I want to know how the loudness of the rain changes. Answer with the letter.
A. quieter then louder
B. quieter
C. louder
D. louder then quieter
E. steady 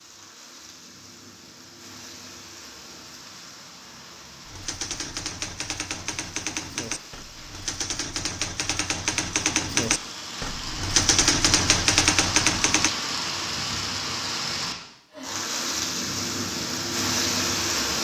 C.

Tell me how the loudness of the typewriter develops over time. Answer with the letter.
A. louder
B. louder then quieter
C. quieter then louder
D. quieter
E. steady
A.